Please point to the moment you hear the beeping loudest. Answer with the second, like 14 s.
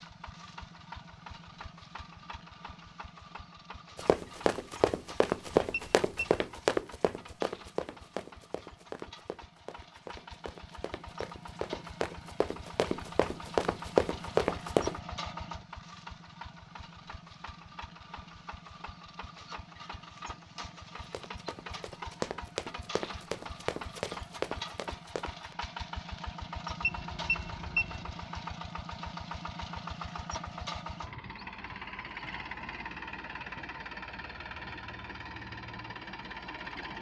28 s.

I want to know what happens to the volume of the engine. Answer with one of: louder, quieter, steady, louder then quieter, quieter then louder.
louder.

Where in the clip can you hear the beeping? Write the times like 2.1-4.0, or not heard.
5.7-6.4, 26.8-28.1.